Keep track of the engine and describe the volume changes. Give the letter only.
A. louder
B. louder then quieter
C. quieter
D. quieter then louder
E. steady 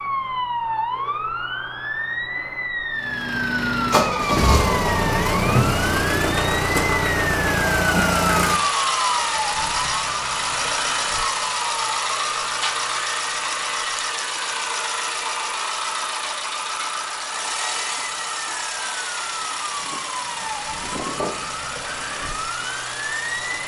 C.